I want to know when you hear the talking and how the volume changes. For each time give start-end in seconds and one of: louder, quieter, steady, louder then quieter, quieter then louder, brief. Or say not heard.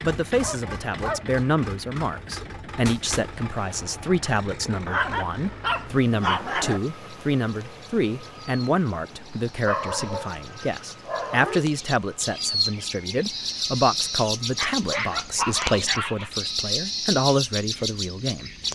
0.0-18.5 steady.